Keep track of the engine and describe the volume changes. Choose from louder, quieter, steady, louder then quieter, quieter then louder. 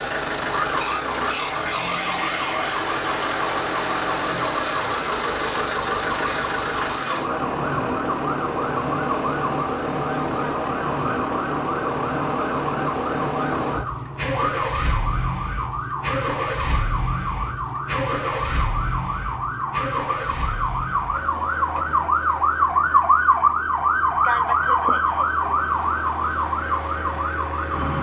quieter.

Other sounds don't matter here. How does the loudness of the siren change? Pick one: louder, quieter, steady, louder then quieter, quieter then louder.
louder.